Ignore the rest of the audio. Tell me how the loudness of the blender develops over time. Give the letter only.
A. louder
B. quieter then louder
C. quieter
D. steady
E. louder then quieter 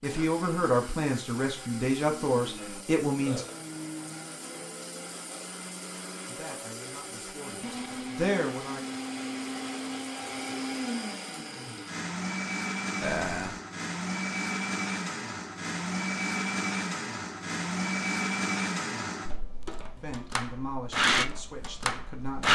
A.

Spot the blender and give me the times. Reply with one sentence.
You can hear the blender from 0.0 to 22.5 s.